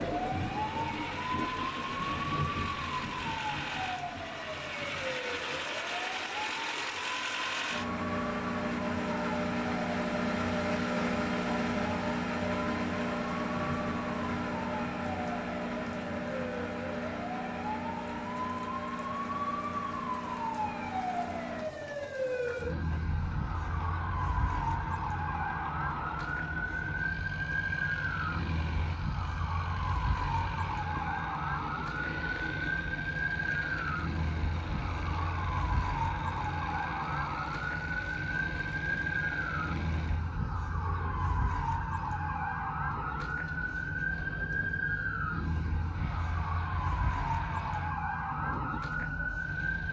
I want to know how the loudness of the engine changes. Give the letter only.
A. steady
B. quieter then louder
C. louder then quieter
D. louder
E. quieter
E.